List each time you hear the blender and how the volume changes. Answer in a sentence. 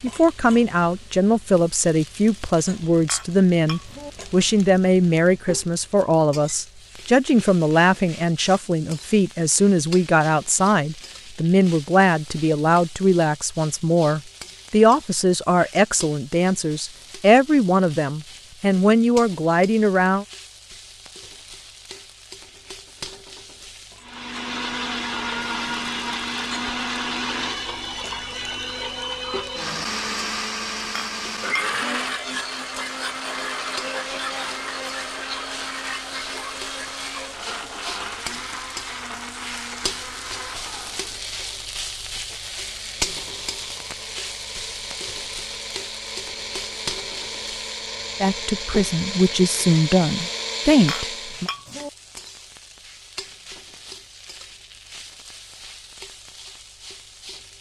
You can hear the blender from 24.0 to 51.5 s, getting quieter then louder.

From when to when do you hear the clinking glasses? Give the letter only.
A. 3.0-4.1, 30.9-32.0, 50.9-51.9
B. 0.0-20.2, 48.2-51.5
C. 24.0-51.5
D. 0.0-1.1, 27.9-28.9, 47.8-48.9
A.